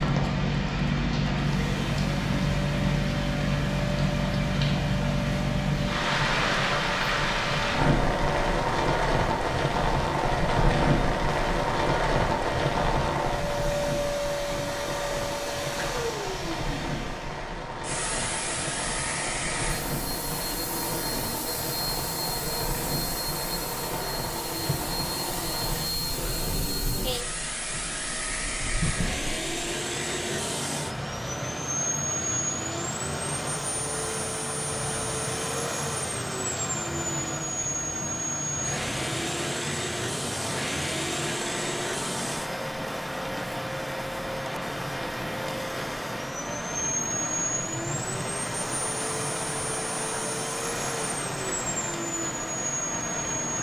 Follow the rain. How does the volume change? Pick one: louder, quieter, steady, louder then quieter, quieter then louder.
quieter.